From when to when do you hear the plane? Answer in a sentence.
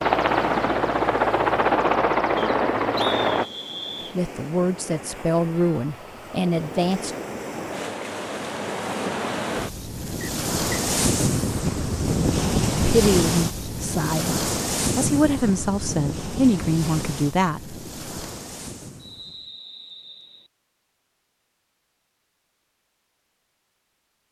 The plane can be heard from 0.0 to 3.5 s.